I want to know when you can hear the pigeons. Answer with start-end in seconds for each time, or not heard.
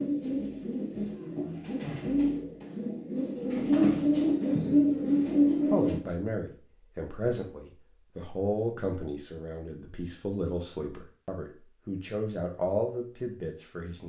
0.0-6.0.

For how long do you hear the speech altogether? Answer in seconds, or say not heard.
8 s.